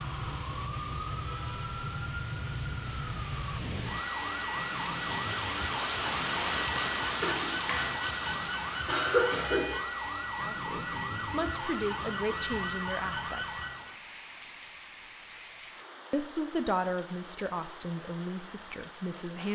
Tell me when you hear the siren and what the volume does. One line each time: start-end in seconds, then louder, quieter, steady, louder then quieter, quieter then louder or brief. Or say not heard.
0.0-13.9 steady.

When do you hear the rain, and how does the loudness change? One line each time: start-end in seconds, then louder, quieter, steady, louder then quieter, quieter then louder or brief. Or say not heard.
0.0-19.5 louder then quieter.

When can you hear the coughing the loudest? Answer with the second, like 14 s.
9 s.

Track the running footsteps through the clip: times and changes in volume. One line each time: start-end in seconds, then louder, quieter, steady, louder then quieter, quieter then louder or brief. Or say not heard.
not heard.